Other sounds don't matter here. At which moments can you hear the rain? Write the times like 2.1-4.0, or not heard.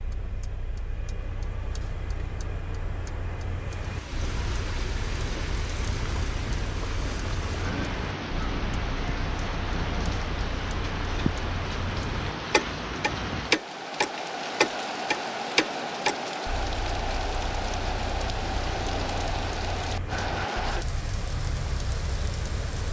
3.6-22.8.